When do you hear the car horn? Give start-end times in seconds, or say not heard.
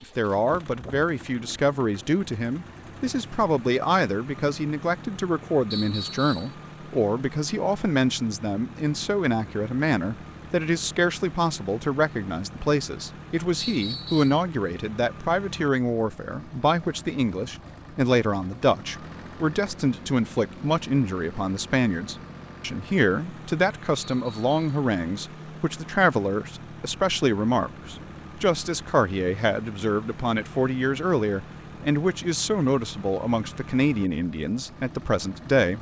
not heard.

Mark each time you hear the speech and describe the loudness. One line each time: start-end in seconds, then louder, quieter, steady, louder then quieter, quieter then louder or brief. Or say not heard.
0.0-35.7 steady.